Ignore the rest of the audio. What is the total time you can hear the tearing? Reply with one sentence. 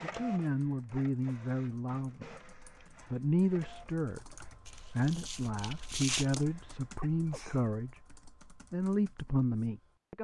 You can hear the tearing for 2 seconds altogether.